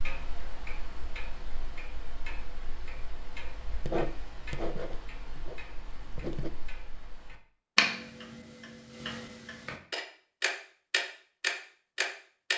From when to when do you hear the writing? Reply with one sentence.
The writing can be heard from 3.7 to 6.5 s.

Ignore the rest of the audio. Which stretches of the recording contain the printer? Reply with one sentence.
The printer can't be heard in this clip.